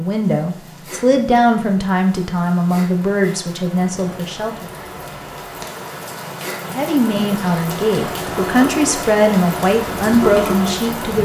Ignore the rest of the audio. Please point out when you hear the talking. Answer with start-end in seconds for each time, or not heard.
0.0-4.7, 6.6-11.2.